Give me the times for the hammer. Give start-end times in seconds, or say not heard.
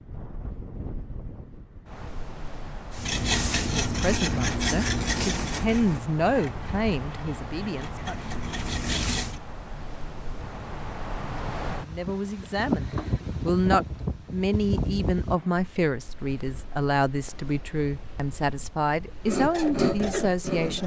not heard.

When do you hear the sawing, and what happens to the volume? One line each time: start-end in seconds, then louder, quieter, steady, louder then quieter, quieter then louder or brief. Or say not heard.
3.0-9.3 quieter then louder
19.2-20.8 brief.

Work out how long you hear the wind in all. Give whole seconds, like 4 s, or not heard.
21 s.